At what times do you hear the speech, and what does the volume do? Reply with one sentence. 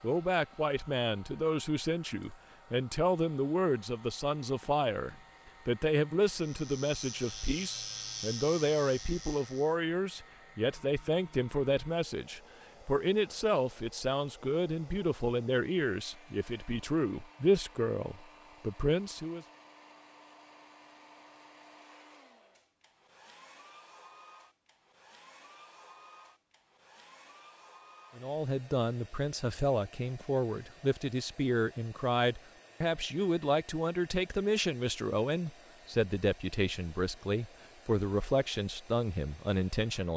You can hear the speech from 0.0 to 19.4 s, at a steady volume; and from 28.1 to 40.1 s, at a steady volume.